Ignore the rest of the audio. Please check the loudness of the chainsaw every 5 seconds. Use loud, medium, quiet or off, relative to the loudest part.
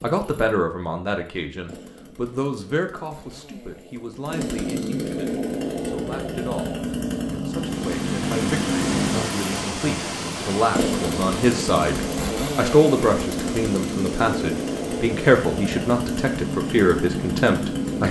medium, loud, loud, loud.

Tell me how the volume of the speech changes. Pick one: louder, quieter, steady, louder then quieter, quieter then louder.
quieter then louder.